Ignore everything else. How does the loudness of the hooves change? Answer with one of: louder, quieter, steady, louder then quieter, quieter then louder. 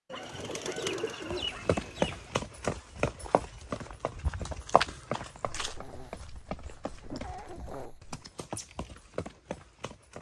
quieter.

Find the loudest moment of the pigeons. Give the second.
1 s.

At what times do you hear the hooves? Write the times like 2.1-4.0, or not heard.
1.3-10.1.